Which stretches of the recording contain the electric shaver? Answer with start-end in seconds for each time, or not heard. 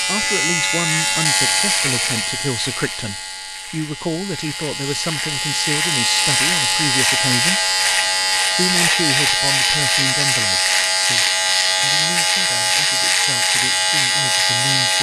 0.0-14.9.